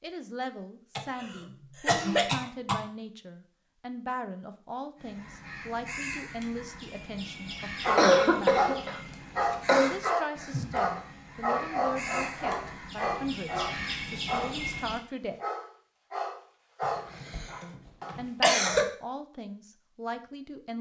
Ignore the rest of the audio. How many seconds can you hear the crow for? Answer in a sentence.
The crow can be heard for 10 seconds in total.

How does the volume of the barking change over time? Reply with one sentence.
The volume of the barking goes down.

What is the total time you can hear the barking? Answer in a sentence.
You can hear the barking for 11 seconds altogether.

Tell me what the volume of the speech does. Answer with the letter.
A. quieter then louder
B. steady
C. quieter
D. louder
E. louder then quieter
B.